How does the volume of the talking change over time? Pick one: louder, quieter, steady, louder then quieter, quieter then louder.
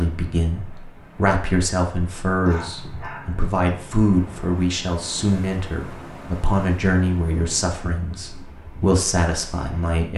steady.